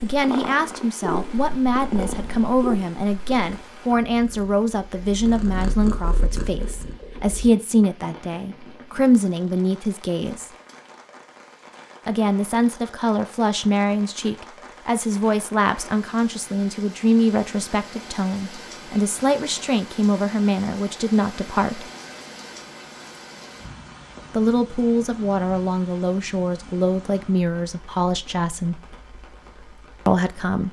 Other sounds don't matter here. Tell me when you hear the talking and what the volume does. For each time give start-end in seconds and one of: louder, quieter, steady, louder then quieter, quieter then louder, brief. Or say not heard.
0.0-10.5 steady
12.1-21.9 steady
24.3-28.8 steady
30.1-30.6 brief.